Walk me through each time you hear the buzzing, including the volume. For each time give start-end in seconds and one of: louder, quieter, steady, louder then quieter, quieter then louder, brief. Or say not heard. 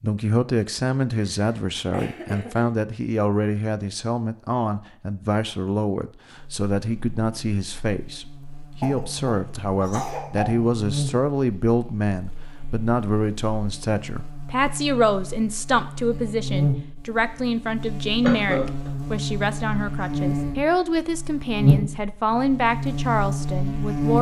6.3-24.1 louder.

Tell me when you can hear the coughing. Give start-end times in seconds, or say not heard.
1.3-2.6, 8.8-10.6, 18.2-18.9.